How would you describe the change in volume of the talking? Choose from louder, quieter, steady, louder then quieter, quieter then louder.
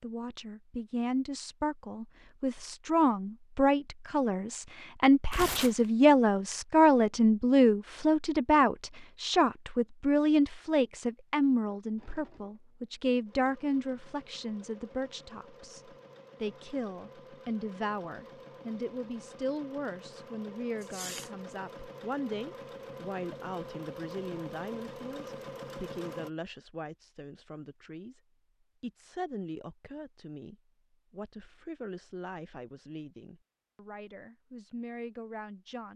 quieter.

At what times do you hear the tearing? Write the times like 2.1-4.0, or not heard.
5.3-5.8, 20.8-21.3.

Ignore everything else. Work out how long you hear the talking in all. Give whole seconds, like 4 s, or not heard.
35 s.